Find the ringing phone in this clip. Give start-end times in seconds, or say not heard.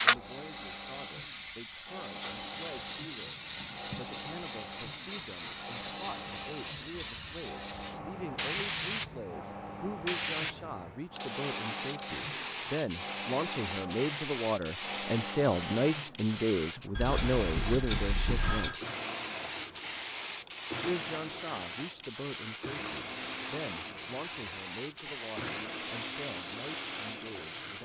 16.9-18.8.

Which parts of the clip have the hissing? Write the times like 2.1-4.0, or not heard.
0.0-27.8.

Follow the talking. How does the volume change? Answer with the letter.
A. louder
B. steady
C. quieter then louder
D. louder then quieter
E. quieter
D.